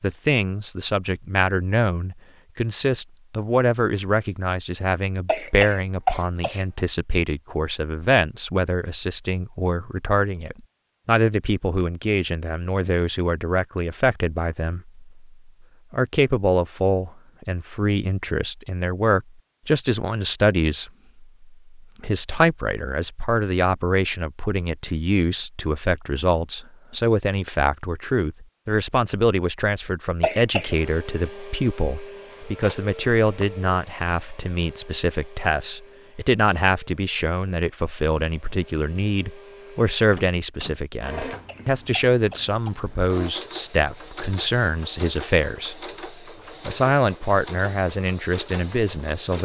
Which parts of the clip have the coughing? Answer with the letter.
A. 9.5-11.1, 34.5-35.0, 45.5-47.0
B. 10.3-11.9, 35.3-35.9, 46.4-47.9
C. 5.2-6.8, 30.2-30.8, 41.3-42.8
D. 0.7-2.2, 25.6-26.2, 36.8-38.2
C.